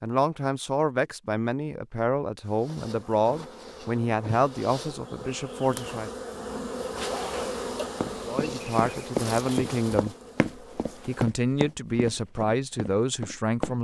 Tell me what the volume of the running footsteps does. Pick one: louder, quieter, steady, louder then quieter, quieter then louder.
quieter.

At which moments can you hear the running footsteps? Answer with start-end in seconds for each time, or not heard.
8.0-13.7.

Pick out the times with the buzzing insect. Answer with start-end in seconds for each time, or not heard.
2.4-11.3.